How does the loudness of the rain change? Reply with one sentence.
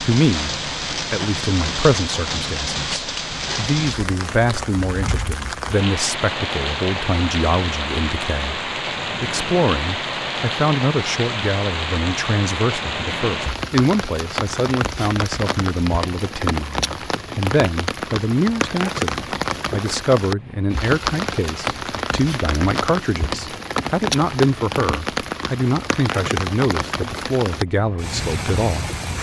The loudness of the rain stays about the same.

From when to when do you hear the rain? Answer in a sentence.
You can hear the rain from 0.0 to 29.1 s.